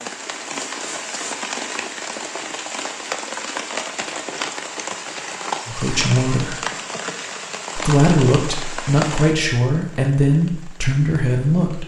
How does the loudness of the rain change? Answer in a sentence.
The loudness of the rain goes down.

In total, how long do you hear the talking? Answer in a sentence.
The talking can be heard for 5 seconds in total.